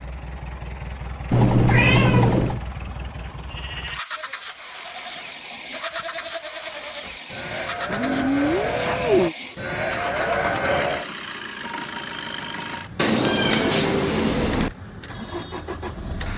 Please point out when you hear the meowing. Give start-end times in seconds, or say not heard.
1.3-2.6, 7.8-9.3, 12.9-14.7.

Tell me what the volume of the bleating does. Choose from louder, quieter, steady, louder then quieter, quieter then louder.
louder.